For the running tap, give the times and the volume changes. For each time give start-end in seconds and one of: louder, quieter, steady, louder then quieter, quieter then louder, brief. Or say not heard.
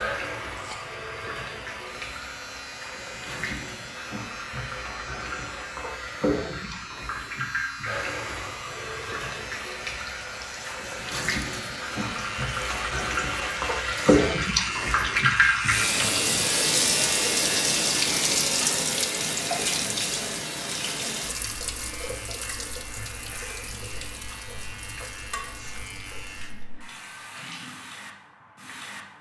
0.0-29.1 louder then quieter.